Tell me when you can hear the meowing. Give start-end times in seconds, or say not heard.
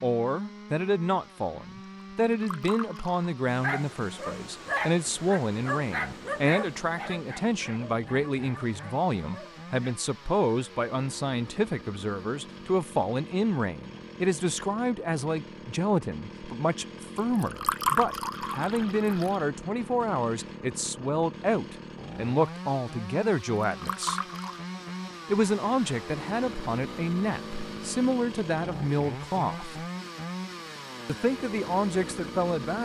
not heard.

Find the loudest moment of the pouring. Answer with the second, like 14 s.
18 s.